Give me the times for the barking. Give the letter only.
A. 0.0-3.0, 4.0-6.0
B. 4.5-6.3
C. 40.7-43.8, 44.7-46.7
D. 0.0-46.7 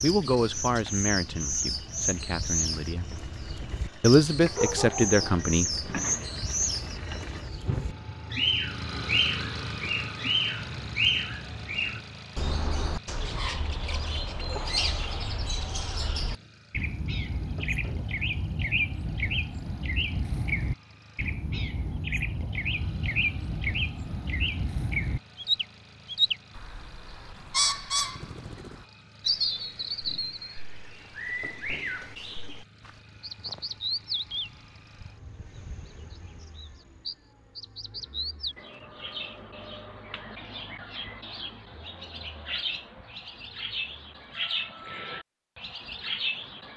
B.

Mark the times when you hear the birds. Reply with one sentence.
The birds can be heard from 0.0 to 46.7 s.